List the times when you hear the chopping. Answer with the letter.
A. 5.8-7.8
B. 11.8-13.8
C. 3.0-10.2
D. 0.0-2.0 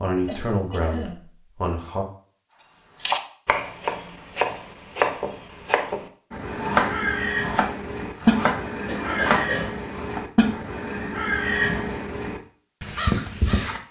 C.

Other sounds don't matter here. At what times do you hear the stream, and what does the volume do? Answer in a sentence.
You can't hear the stream here.